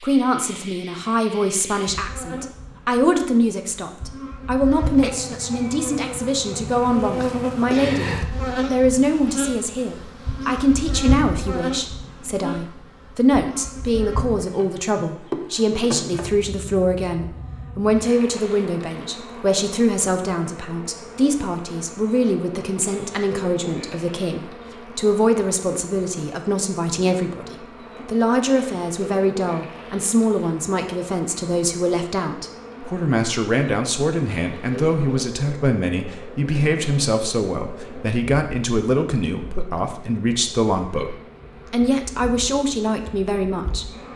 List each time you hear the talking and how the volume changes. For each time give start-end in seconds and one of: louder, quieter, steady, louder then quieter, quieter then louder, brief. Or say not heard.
0.0-43.9 steady.